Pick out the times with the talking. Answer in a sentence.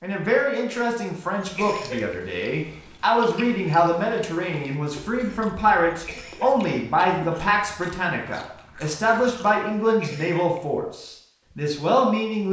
The talking can be heard from 0.0 to 12.4 s.